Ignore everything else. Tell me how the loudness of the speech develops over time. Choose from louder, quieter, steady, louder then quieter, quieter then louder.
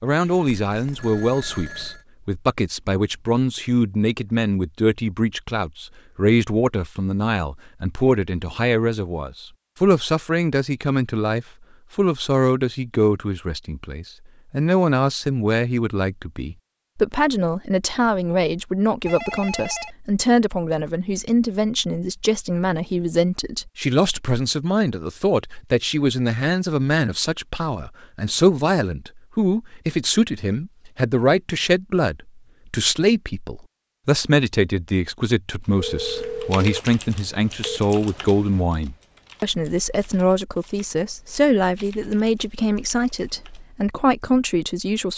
steady.